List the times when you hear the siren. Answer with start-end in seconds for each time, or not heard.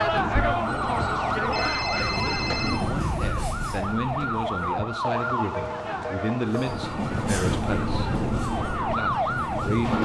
0.0-9.9.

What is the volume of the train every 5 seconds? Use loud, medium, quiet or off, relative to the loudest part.
medium, loud.